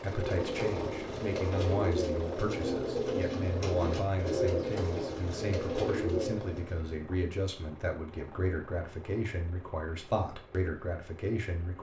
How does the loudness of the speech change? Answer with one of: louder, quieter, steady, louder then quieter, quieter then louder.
steady.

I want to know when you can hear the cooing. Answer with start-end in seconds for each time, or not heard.
0.0-6.8.